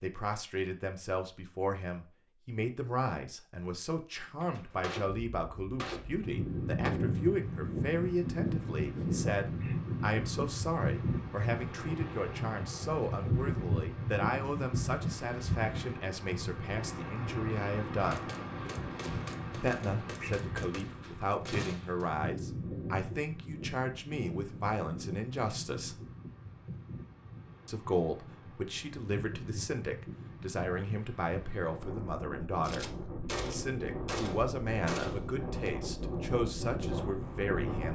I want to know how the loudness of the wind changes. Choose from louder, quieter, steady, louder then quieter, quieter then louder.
quieter then louder.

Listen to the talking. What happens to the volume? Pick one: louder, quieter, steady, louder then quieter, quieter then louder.
steady.